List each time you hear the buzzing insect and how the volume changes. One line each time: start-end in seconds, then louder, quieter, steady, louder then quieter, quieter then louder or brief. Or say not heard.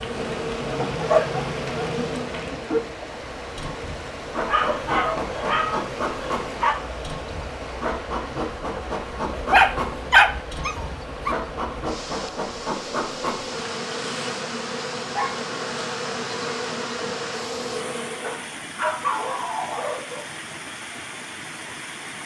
0.0-18.4 steady.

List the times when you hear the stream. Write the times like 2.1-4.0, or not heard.
0.0-22.2.